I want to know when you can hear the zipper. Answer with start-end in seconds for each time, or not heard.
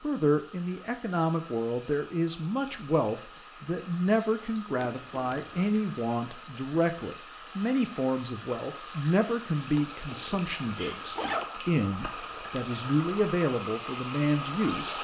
4.8-5.8, 9.8-11.5.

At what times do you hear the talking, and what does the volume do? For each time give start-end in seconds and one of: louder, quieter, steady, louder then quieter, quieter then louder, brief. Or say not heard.
0.0-14.9 steady.